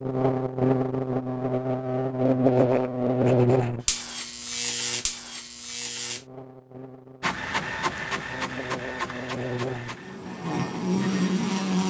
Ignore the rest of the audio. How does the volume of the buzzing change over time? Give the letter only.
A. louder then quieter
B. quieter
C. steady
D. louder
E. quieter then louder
E.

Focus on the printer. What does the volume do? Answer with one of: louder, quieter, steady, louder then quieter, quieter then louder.
quieter.